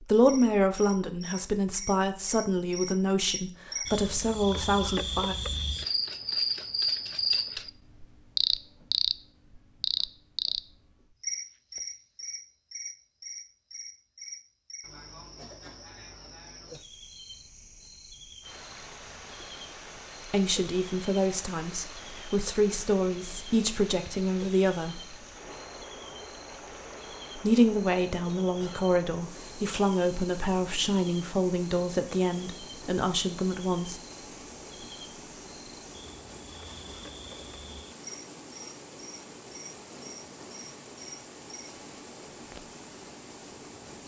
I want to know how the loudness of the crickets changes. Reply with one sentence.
The loudness of the crickets goes down.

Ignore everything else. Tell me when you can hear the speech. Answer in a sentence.
The speech can be heard from 0.0 to 5.3 s, from 20.3 to 25.0 s and from 27.4 to 34.0 s.